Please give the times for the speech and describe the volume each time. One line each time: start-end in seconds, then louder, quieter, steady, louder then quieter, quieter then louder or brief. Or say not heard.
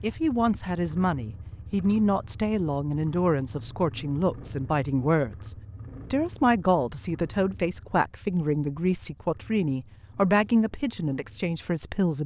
0.0-12.2 steady.